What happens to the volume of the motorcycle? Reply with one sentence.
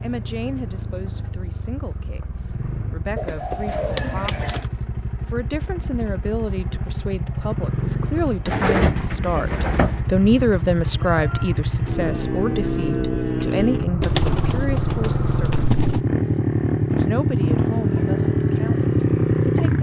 The loudness of the motorcycle goes up.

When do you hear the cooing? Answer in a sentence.
The cooing can be heard from 3.1 to 4.7 s, from 8.4 to 10.0 s and from 14.0 to 16.0 s.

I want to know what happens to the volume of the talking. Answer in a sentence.
The volume of the talking goes up, then down.